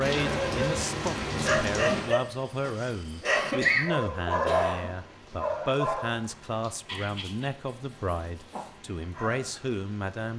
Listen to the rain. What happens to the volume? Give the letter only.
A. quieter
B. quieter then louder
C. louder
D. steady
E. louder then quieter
A.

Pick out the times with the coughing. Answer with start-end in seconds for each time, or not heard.
3.2-4.9.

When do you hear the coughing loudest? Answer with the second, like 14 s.
4 s.